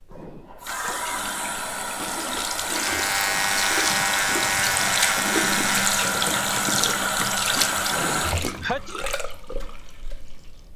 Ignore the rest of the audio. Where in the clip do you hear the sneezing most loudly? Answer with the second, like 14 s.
9 s.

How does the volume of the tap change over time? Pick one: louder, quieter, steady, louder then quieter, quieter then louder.
louder then quieter.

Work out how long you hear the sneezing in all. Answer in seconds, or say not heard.
2 s.